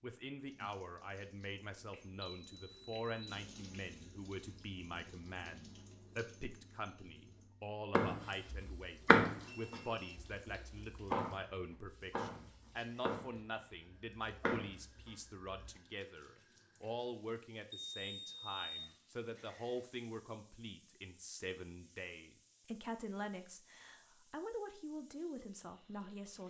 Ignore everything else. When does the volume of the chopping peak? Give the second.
9 s.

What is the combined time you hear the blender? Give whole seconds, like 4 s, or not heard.
not heard.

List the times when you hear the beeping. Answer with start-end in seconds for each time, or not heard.
1.9-3.5, 9.4-10.2, 17.7-18.9.